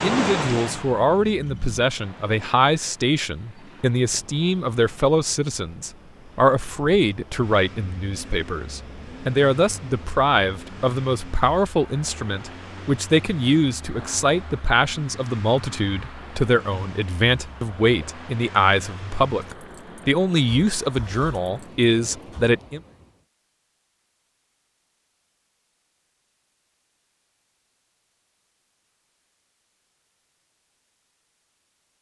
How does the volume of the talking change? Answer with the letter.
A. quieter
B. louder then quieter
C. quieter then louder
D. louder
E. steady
E.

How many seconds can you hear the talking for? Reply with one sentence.
You can hear the talking for 23 seconds altogether.